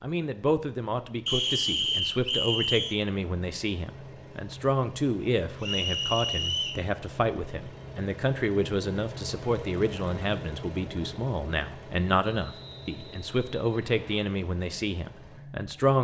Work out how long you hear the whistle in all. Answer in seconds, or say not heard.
5 s.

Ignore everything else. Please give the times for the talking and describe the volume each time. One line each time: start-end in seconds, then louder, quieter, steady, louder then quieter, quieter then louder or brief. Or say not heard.
0.0-15.9 steady.